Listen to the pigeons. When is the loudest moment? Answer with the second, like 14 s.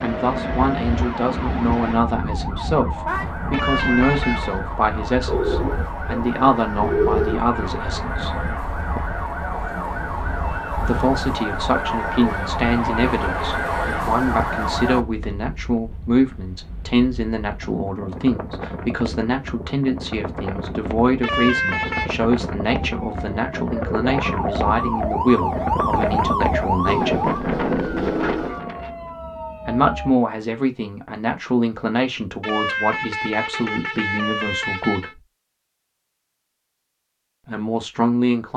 7 s.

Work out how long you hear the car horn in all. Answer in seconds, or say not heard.
5 s.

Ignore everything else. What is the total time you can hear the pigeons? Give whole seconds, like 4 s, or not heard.
4 s.